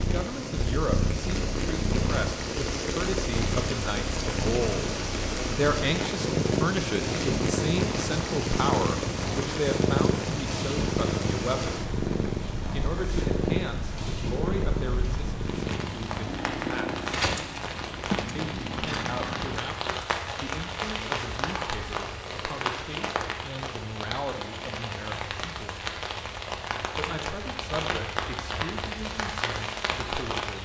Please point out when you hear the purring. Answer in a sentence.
The purring can be heard from 0.0 to 19.6 s.